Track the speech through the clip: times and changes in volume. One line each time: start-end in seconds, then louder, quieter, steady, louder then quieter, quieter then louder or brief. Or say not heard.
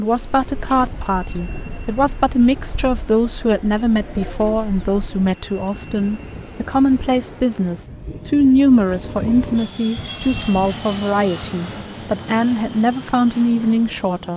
0.0-14.3 steady.